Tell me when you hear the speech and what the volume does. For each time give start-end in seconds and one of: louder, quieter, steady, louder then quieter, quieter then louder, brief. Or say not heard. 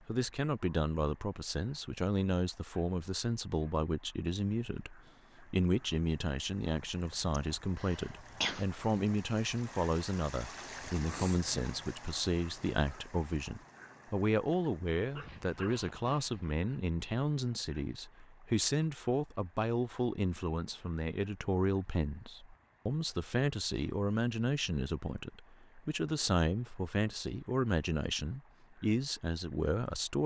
0.1-30.2 steady.